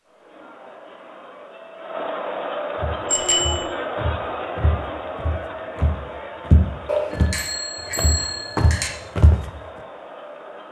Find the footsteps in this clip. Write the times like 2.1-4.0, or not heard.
2.8-9.4.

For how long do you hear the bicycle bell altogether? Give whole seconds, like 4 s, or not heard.
3 s.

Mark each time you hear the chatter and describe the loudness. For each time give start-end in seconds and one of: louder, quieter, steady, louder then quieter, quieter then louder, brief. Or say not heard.
0.0-10.6 louder then quieter.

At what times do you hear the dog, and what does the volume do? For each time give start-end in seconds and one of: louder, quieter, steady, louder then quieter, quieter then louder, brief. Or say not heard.
not heard.